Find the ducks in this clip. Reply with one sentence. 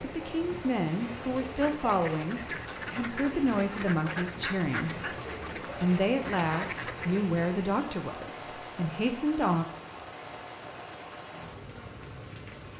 You can hear the ducks from 1.4 to 7.2 s.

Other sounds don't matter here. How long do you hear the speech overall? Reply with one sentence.
The speech can be heard for 10 seconds in total.